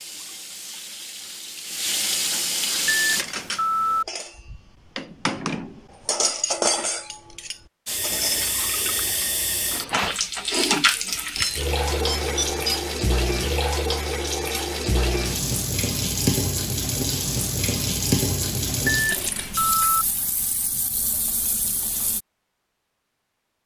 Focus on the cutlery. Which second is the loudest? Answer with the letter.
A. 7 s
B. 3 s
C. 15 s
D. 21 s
A.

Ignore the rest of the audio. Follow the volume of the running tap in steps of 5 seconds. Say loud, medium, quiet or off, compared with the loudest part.
loud, loud, loud, loud, medium.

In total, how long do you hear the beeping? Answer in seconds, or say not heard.
4 s.